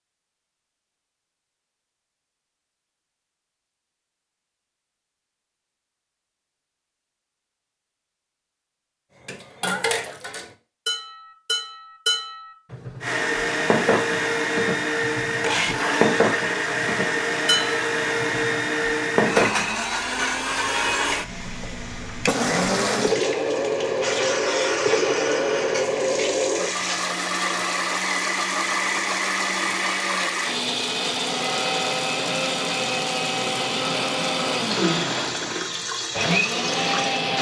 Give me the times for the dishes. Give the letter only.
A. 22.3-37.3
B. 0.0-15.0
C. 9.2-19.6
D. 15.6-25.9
C.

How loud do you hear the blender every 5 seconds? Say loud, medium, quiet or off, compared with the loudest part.
off, off, loud, loud, loud, loud, loud, loud.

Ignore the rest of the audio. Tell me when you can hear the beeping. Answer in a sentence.
You can't hear the beeping here.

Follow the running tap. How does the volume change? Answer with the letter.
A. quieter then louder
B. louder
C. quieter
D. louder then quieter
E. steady
A.